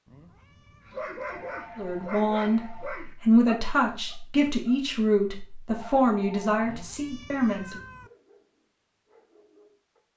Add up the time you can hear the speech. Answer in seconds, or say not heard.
6 s.